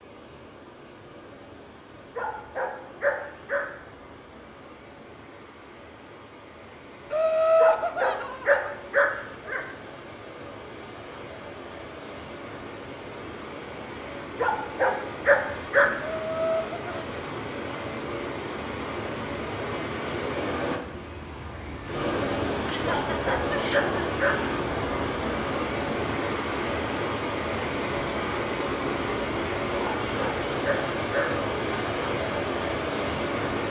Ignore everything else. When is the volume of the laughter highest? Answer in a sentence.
The volume of the laughter peaks at 8 seconds.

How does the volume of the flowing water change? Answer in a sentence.
The volume of the flowing water goes up.